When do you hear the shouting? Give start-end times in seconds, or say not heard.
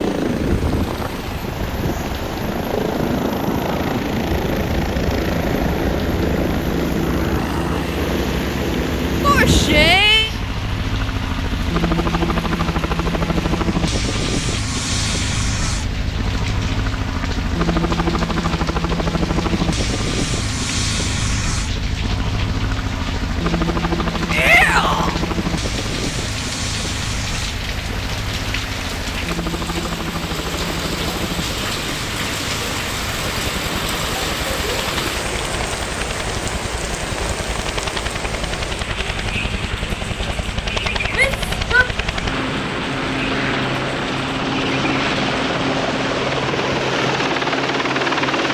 9.2-10.3, 24.3-25.1, 41.1-41.9.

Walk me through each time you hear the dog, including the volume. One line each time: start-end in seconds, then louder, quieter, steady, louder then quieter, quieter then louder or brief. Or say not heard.
not heard.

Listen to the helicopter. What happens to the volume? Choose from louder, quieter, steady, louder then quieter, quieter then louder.
quieter then louder.